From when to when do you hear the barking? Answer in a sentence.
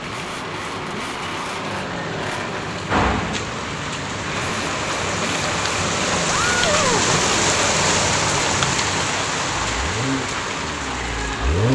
The barking can't be heard in this clip.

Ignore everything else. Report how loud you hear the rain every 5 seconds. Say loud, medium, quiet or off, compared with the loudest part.
medium, loud, medium.